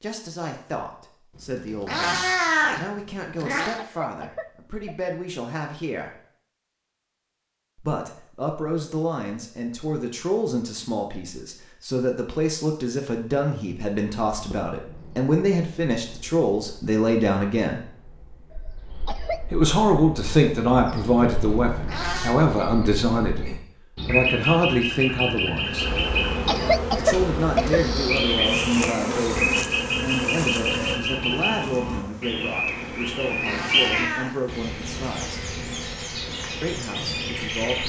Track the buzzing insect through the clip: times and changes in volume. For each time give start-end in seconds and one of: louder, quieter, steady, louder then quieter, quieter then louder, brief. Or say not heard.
25.6-37.7 quieter.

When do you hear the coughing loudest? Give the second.
27 s.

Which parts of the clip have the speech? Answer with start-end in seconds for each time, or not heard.
0.0-6.1, 7.8-17.8, 19.5-25.9, 26.9-35.5, 36.6-37.8.